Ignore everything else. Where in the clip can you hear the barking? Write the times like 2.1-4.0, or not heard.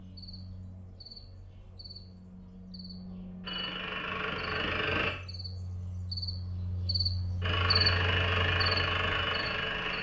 not heard.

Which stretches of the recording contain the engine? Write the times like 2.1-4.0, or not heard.
3.4-5.2, 7.4-9.9.